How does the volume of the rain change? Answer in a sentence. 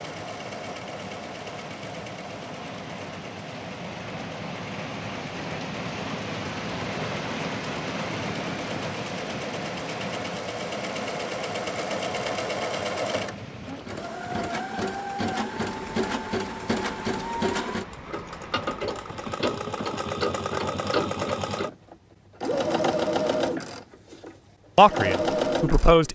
The loudness of the rain goes up, then down.